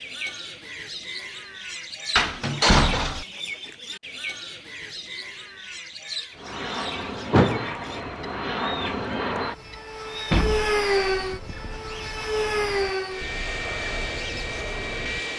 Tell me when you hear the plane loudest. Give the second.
11 s.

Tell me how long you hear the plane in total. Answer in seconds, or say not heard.
9 s.